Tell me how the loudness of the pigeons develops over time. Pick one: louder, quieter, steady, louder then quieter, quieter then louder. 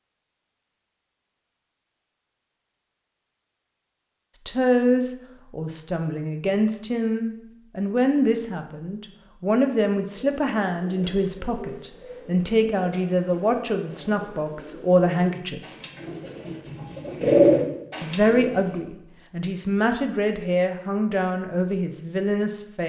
louder.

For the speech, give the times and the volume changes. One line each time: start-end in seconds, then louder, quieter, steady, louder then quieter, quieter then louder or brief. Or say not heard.
4.5-15.6 steady
18.0-22.8 steady.